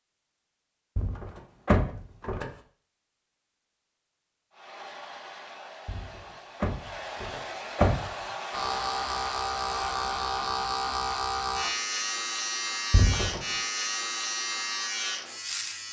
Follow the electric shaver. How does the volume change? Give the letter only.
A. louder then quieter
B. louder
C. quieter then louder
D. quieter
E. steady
E.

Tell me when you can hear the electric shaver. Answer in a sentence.
You can hear the electric shaver from 8.5 to 15.8 s.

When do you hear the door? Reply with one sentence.
The door can be heard from 0.9 to 2.5 s, from 5.8 to 8.1 s and from 12.9 to 13.4 s.